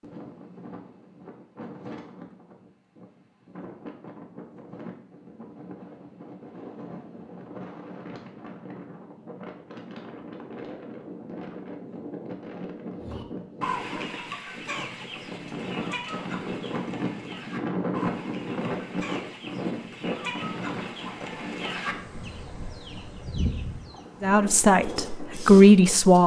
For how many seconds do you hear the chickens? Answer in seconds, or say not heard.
11 s.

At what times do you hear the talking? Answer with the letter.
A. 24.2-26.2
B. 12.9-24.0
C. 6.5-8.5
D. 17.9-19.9
A.